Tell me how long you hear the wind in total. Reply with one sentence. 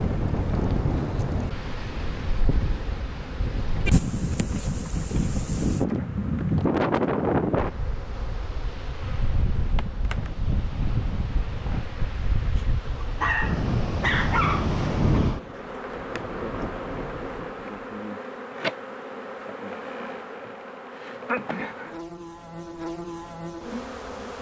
You can hear the wind for 18 seconds altogether.